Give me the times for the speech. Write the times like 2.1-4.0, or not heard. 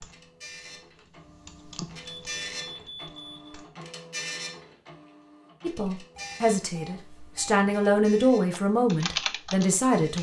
5.6-10.1.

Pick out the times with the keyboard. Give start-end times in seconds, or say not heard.
0.0-3.7, 8.5-10.1.